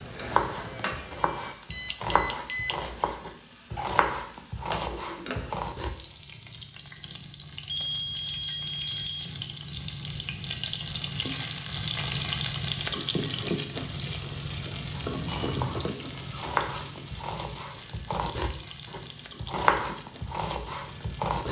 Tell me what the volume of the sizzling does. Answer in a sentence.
The loudness of the sizzling goes up, then down.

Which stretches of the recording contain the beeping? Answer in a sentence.
The beeping can be heard from 1.7 to 2.8 s, from 7.7 to 9.2 s and from 14.7 to 15.9 s.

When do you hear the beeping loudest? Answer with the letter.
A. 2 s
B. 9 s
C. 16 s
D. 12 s
A.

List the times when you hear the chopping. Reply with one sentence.
The chopping can be heard from 0.0 to 6.0 s and from 14.9 to 21.4 s.